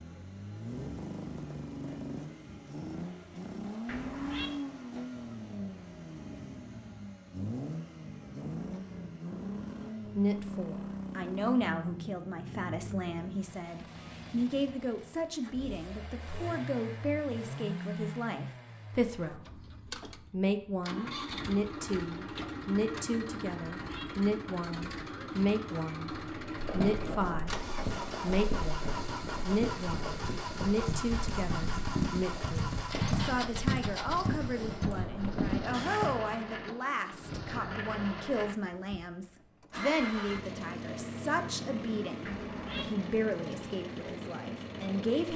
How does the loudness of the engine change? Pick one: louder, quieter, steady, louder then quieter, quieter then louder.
steady.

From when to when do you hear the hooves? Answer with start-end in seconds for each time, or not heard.
26.6-36.1.